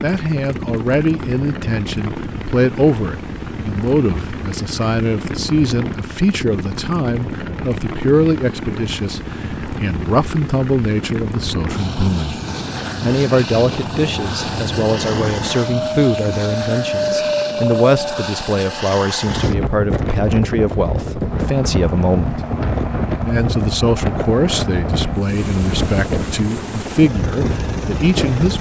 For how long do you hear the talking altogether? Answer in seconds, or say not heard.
27 s.